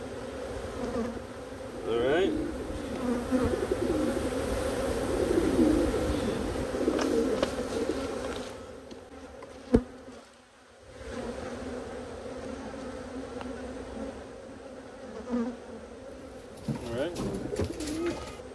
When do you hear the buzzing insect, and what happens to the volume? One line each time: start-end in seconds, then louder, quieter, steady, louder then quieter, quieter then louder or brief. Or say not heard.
0.0-18.4 quieter.